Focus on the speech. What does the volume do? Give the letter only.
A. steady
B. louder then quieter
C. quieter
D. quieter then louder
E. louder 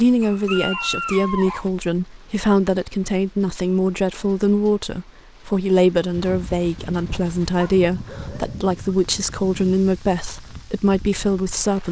A.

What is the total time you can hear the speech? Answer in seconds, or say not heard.
12 s.